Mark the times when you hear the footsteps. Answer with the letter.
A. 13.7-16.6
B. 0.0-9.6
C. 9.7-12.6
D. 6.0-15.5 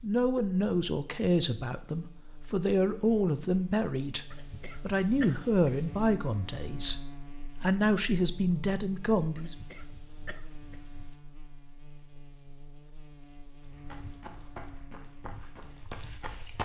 A.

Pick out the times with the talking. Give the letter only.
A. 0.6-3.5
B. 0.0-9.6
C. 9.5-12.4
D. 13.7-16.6
B.